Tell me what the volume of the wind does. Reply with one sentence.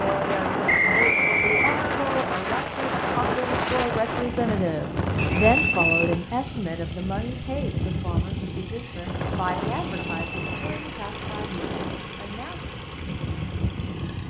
The volume of the wind goes down.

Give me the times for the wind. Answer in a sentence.
The wind can be heard from 0.0 to 14.2 s.